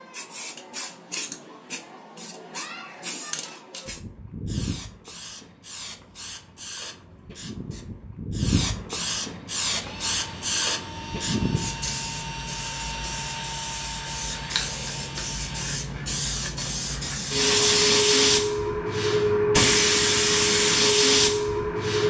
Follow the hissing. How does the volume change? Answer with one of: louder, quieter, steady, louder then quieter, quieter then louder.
louder.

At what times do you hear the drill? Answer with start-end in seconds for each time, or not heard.
9.7-15.7.